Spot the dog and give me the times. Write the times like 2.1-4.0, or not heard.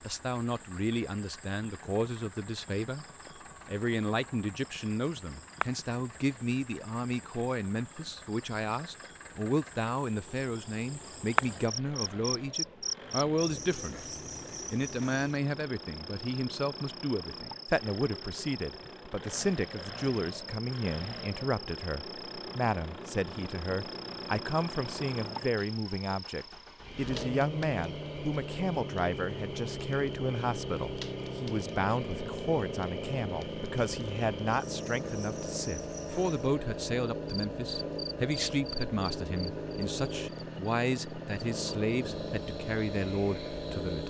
not heard.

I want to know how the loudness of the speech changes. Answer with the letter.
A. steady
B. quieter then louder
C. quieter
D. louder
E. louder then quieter
A.